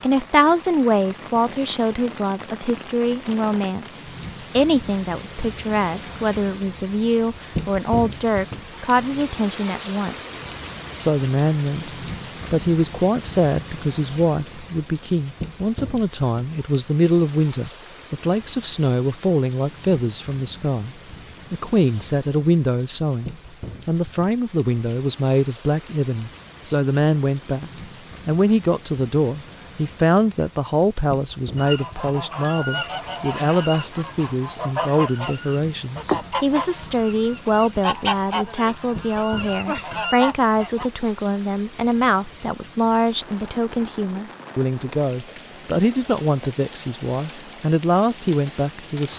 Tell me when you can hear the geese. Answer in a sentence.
The geese can be heard from 31.6 to 40.9 s.